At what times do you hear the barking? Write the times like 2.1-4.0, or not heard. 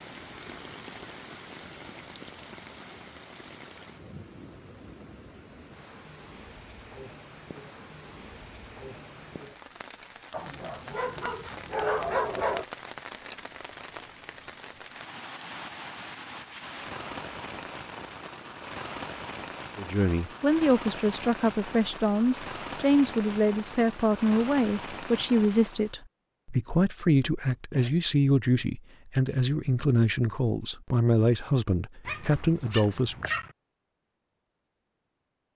10.3-12.7, 32.0-33.5.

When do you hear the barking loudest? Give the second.
12 s.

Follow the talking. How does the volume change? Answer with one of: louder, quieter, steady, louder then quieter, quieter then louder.
steady.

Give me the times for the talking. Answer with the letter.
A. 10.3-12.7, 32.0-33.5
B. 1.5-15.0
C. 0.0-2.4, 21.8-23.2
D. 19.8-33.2
D.